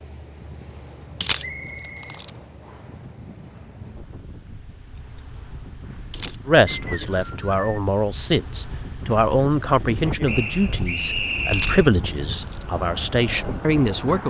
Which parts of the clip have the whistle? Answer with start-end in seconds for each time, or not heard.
1.4-3.0, 6.7-7.8, 10.2-11.9.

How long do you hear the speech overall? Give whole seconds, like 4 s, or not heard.
8 s.